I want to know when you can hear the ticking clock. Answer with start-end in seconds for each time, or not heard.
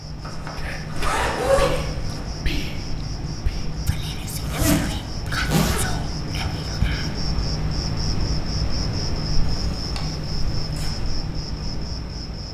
not heard.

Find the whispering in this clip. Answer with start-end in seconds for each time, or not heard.
0.6-7.2.